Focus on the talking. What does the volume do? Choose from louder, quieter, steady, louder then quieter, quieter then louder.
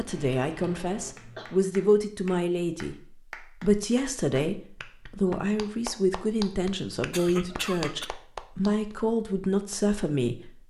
steady.